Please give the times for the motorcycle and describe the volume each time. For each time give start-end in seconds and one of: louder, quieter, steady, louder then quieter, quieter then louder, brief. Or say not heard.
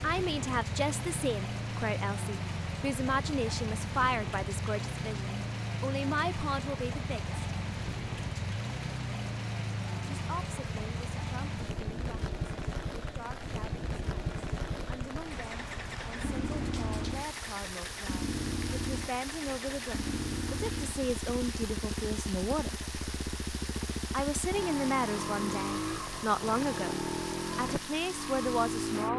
0.0-29.1 steady.